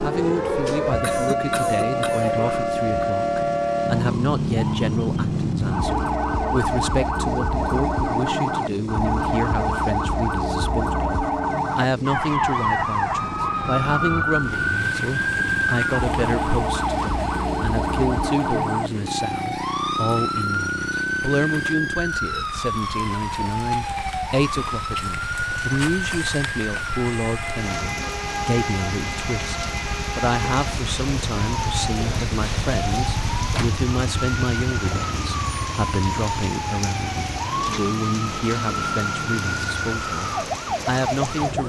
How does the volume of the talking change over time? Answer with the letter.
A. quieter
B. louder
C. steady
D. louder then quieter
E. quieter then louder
C.